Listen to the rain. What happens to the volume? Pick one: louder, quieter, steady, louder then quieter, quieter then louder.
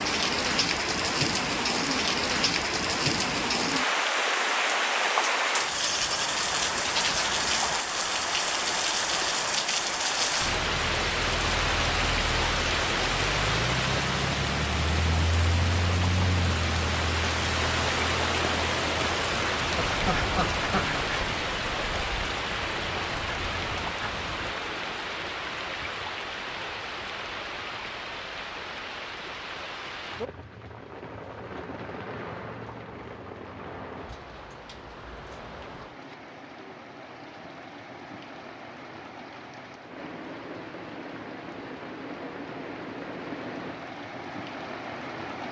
quieter.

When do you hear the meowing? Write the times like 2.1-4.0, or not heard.
not heard.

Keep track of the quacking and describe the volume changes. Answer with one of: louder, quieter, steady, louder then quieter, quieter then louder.
quieter.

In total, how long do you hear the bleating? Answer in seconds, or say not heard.
2 s.